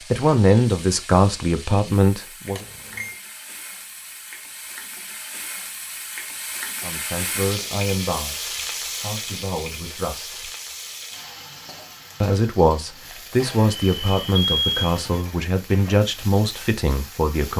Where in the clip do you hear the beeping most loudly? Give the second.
15 s.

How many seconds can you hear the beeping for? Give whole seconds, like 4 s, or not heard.
2 s.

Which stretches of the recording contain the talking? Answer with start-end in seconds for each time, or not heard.
0.1-2.6, 6.8-10.5, 12.2-17.5.